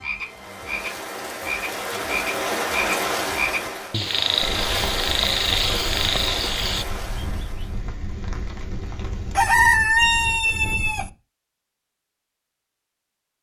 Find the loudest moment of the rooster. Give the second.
10 s.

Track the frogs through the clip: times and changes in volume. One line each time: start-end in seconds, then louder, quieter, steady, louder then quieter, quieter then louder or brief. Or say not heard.
0.0-6.8 louder.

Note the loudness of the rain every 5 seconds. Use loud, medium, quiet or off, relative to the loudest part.
loud, medium, off.